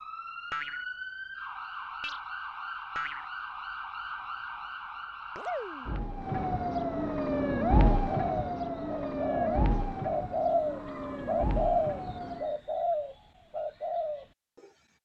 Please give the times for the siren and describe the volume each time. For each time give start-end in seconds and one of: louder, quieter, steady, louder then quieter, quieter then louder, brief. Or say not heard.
0.0-12.5 louder then quieter.